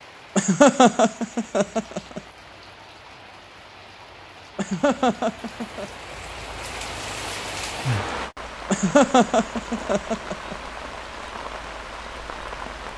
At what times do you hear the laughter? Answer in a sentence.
You can hear the laughter from 0.3 to 2.2 s, from 4.5 to 5.8 s and from 8.7 to 10.6 s.